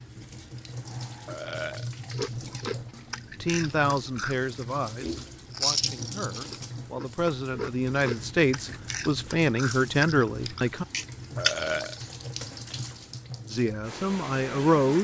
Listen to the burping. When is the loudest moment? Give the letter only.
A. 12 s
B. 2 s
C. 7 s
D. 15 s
A.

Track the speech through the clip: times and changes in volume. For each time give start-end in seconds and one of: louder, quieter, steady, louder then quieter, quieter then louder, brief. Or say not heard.
3.4-10.8 quieter then louder
13.5-14.9 brief.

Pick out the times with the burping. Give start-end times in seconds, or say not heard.
1.2-1.9, 11.3-12.0.